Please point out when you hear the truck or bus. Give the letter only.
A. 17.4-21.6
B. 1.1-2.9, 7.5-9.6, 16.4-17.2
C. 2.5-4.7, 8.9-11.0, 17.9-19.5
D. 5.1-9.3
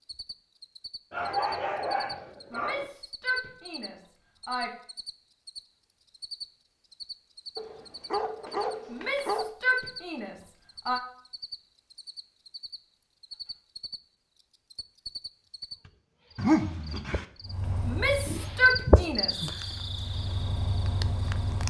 A.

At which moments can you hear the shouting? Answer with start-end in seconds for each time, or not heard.
2.5-4.7, 8.9-11.0, 17.9-19.5.